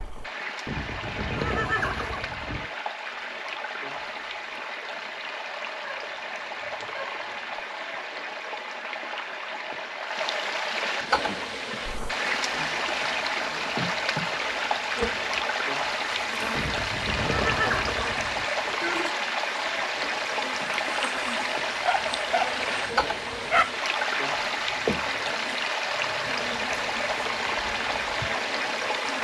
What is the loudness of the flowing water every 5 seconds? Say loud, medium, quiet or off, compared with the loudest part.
medium, medium, loud, loud, loud, loud.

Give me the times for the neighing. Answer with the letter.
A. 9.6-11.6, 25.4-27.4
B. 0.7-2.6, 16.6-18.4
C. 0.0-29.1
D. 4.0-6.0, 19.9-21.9
B.